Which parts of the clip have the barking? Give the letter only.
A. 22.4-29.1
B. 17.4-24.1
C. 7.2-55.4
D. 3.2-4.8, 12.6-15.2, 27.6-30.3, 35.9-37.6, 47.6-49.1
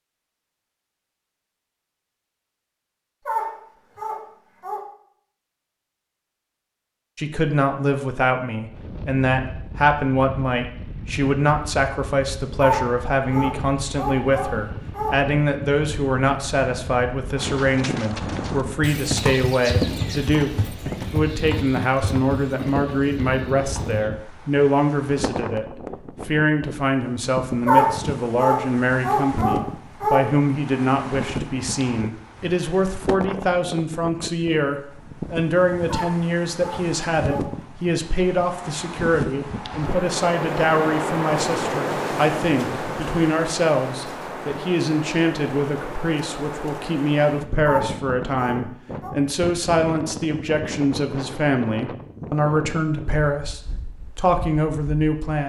D.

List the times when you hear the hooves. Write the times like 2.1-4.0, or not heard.
17.4-24.1.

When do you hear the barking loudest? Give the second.
28 s.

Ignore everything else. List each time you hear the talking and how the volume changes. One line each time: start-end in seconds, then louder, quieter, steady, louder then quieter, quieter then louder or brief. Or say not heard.
7.2-55.4 steady.